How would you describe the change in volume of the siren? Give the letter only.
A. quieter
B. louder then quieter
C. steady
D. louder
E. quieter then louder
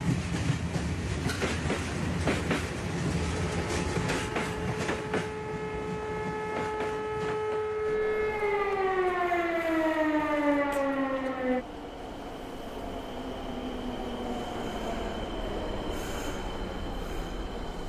D.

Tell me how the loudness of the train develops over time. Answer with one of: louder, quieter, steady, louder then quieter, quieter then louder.
quieter then louder.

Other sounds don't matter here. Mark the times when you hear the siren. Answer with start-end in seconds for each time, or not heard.
3.2-11.7.